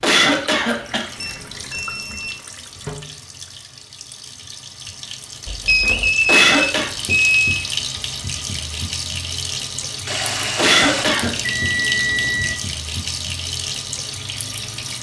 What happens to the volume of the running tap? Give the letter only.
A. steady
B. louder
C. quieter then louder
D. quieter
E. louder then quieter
B.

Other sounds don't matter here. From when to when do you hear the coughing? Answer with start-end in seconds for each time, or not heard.
0.0-1.1, 6.2-6.9, 10.6-11.3.